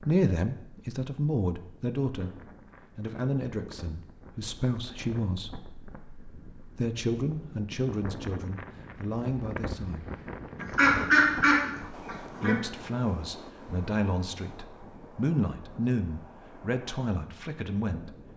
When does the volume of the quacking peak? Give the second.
11 s.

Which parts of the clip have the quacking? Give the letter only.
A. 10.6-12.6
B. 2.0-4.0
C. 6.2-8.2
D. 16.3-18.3
A.